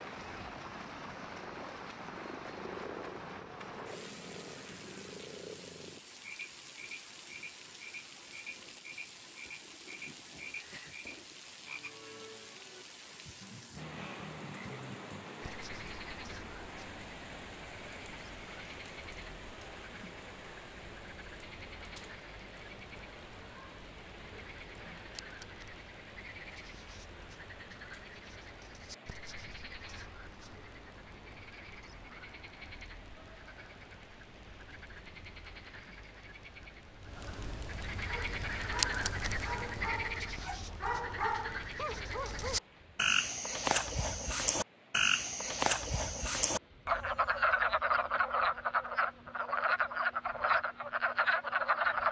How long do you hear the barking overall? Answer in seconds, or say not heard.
5 s.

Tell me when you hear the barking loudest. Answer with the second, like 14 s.
41 s.